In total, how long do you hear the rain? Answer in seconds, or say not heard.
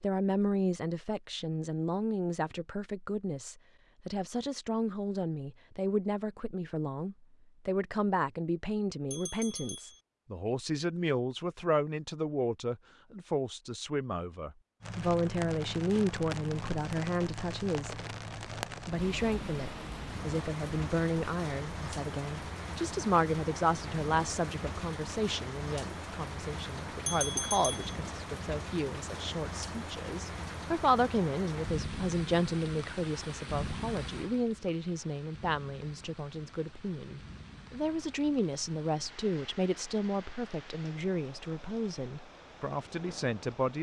29 s.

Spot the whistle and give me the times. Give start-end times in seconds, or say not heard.
not heard.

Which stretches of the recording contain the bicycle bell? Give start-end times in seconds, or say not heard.
9.1-10.0, 27.1-27.9.